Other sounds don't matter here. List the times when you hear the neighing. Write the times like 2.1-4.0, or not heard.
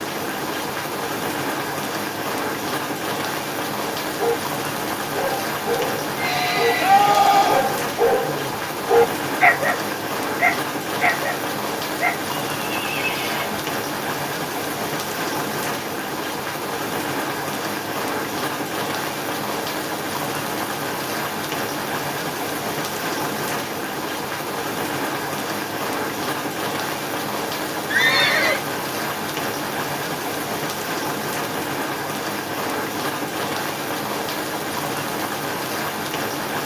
6.2-7.7, 12.6-13.6, 27.9-28.6.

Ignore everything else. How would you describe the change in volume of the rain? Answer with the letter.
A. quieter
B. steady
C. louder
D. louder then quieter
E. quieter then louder
B.